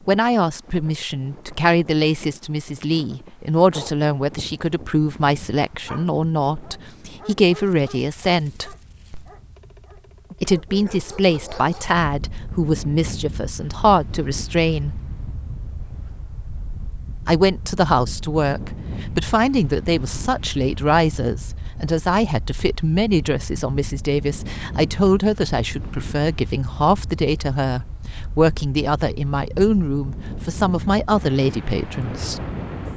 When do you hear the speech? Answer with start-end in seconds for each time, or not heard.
0.1-8.8, 10.4-15.0, 17.2-32.4.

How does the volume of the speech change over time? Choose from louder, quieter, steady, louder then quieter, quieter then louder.
steady.